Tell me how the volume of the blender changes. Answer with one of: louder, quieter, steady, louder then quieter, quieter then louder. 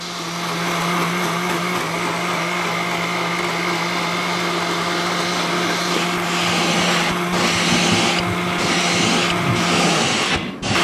steady.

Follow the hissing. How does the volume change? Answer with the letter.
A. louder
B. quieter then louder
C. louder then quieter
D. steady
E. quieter
A.